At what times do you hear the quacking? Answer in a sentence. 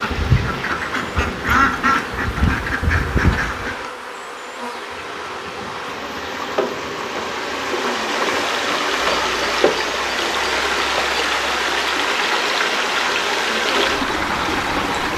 You can hear the quacking from 0.0 to 3.8 s.